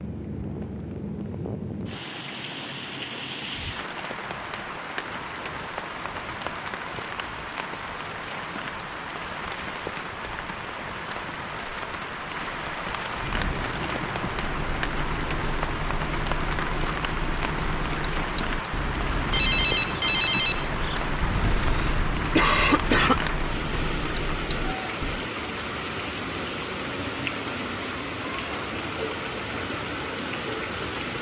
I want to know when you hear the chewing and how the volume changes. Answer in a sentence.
You can't hear the chewing here.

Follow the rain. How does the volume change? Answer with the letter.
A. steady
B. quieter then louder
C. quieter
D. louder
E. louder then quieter
A.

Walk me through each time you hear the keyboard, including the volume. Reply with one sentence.
The keyboard can be heard from 13.2 to 25.3 s, at a steady volume.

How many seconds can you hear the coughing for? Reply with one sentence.
The coughing can be heard for 2 seconds in total.